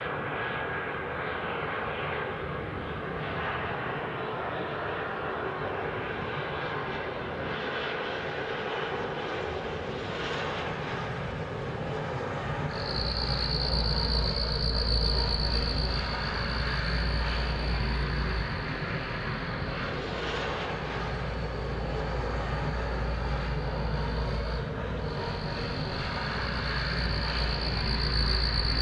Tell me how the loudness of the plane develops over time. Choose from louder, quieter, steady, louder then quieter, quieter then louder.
steady.